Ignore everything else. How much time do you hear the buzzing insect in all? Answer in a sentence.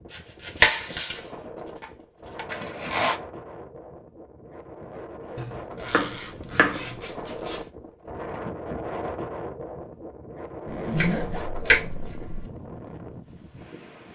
You can't hear the buzzing insect here.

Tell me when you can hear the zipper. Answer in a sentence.
You can hear the zipper from 2.5 to 3.2 s, from 5.8 to 7.7 s and from 10.7 to 11.5 s.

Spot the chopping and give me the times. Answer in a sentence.
The chopping can be heard from 0.1 to 2.5 s, from 5.3 to 7.0 s and from 10.9 to 12.4 s.